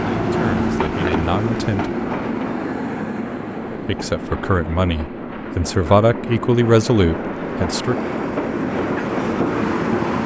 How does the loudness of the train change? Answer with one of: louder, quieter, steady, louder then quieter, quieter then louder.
quieter then louder.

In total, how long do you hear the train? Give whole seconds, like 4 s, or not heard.
10 s.